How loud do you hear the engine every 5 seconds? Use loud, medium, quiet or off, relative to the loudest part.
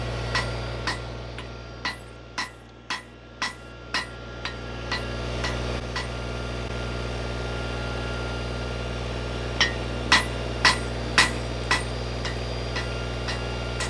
medium, loud, loud.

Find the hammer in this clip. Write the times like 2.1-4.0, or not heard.
0.1-6.2, 9.4-13.8.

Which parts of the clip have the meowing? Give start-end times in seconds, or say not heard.
not heard.